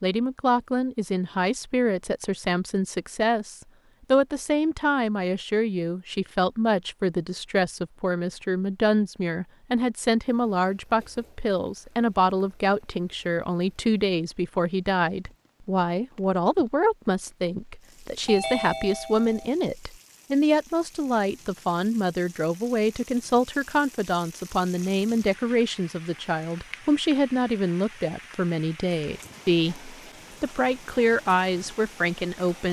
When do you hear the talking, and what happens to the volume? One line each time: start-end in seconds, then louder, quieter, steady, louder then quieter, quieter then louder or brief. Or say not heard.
0.0-32.6 steady.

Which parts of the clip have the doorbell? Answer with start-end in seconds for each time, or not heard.
18.2-19.5.